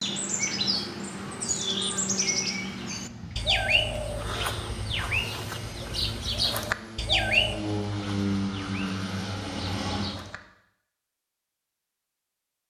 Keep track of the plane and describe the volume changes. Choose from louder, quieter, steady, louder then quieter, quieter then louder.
louder.